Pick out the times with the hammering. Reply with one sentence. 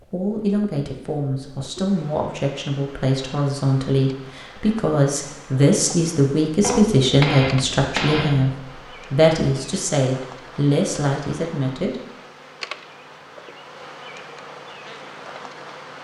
The hammering can be heard from 6.6 to 8.6 s.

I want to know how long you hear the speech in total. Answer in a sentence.
You can hear the speech for 12 seconds altogether.